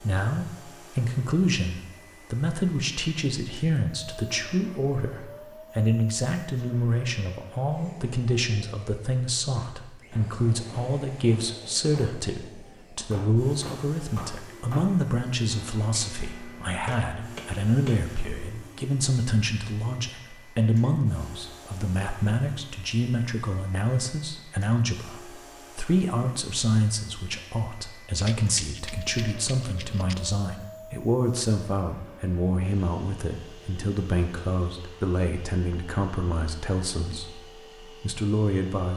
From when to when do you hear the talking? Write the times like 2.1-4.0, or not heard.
0.0-38.9.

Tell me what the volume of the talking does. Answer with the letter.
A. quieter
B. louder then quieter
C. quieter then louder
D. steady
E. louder
D.